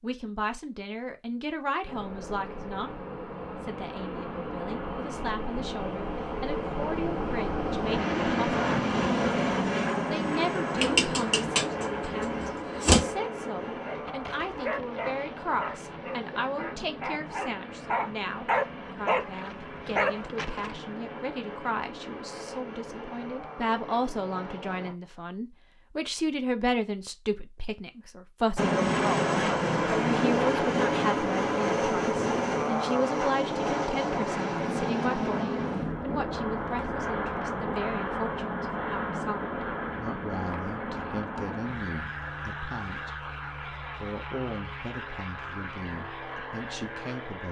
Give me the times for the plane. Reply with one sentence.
You can hear the plane from 1.9 to 24.9 s and from 28.6 to 47.4 s.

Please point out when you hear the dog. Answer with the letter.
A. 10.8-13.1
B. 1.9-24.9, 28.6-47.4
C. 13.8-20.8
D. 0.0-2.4
C.